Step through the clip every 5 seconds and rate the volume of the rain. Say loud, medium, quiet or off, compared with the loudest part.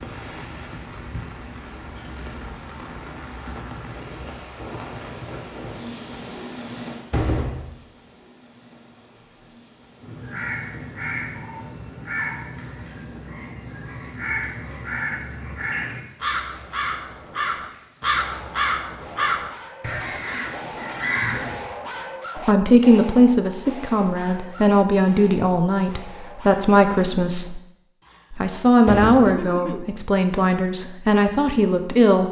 loud, loud, quiet, quiet, off, off, off.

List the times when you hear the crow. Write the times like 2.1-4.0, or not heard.
10.0-21.6.